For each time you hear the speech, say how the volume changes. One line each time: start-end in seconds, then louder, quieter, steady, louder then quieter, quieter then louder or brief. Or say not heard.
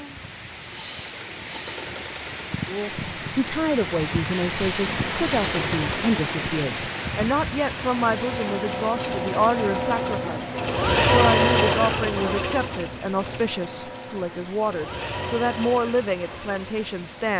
2.6-17.3 steady.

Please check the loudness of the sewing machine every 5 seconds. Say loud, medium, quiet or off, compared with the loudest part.
medium, medium, loud, medium.